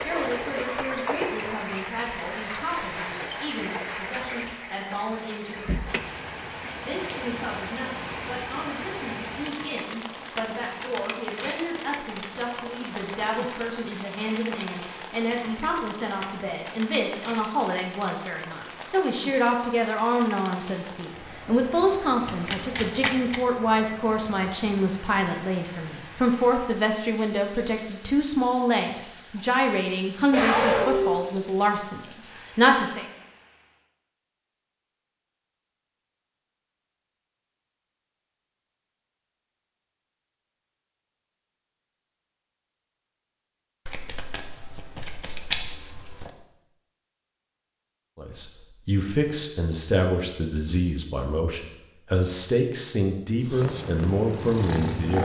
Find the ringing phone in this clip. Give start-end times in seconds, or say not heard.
not heard.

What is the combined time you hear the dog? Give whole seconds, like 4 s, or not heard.
3 s.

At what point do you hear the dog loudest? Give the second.
31 s.